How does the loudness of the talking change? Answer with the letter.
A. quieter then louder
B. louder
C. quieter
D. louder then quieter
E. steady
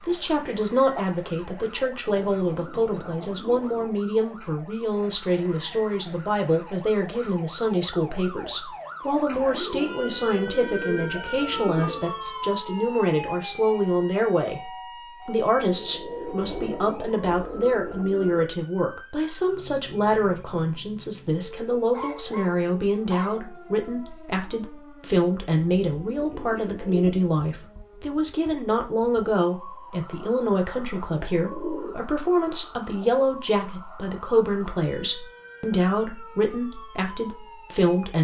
E.